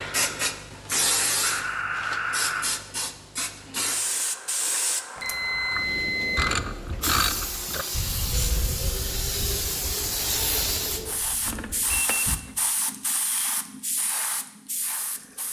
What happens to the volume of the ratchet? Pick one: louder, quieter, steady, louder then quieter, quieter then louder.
quieter.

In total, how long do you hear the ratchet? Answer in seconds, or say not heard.
6 s.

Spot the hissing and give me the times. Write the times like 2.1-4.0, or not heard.
0.0-15.4.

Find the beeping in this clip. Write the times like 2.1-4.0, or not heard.
1.4-2.6, 5.2-6.5, 11.4-12.2.